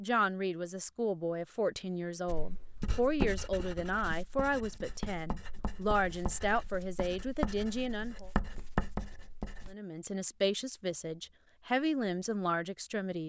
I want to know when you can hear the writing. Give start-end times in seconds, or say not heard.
2.2-9.8.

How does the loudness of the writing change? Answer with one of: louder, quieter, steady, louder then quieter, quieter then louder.
quieter then louder.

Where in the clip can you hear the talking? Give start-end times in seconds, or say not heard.
0.0-8.3, 9.7-13.2.